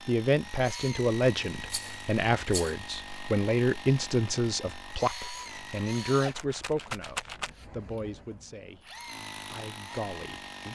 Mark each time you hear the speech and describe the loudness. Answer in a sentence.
The speech can be heard from 0.1 to 10.7 s, getting quieter.